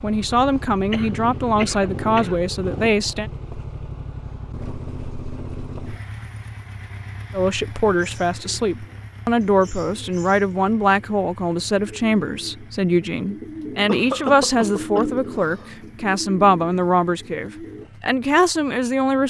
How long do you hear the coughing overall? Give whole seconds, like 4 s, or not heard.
3 s.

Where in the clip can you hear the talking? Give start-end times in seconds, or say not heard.
0.0-3.3, 7.3-19.2.